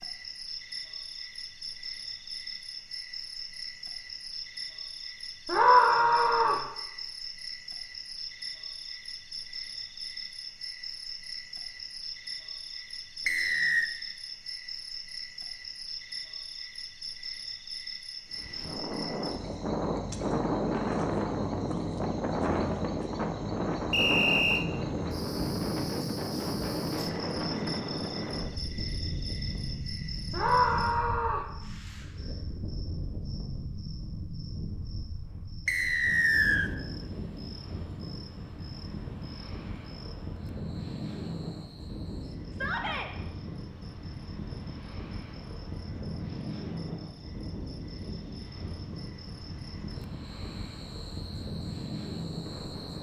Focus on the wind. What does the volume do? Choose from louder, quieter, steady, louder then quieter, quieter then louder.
quieter.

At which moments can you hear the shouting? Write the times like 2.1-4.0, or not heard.
5.5-6.7, 30.3-31.5, 42.5-43.1.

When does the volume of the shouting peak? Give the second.
6 s.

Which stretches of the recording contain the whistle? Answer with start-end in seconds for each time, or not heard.
13.2-13.9, 23.9-24.6, 35.6-36.7.